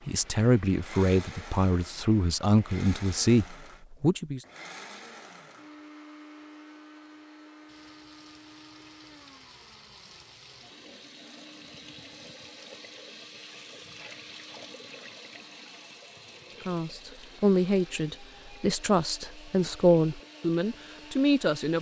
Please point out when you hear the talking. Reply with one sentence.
You can hear the talking from 0.1 to 4.4 s and from 16.6 to 21.7 s.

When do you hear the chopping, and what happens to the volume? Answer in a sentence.
The chopping can't be heard in this clip.